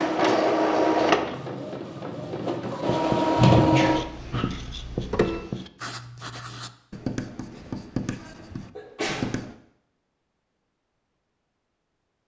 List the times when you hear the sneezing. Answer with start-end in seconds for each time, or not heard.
3.4-4.5, 8.8-9.3.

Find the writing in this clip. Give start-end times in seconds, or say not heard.
2.9-9.6.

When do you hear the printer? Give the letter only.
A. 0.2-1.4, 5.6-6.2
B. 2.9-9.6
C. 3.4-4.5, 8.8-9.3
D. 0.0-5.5
D.